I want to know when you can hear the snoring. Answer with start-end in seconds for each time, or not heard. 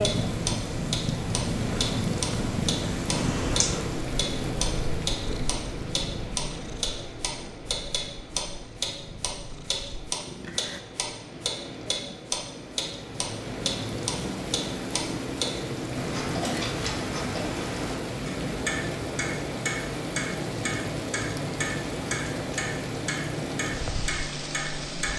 not heard.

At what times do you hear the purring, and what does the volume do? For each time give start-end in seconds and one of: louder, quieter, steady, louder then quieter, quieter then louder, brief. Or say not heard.
0.0-10.8 quieter.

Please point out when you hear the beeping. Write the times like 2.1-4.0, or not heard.
3.1-3.9.